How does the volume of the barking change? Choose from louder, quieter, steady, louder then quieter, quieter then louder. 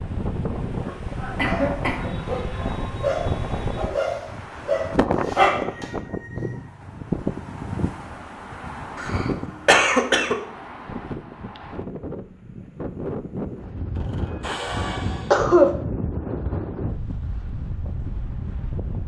louder.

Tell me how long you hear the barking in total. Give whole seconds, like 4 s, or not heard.
6 s.